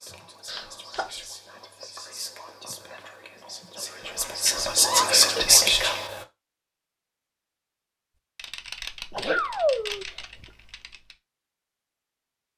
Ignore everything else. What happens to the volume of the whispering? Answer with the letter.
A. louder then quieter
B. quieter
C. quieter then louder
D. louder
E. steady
D.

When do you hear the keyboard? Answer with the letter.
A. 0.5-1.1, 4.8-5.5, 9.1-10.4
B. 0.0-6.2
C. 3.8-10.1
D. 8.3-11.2
D.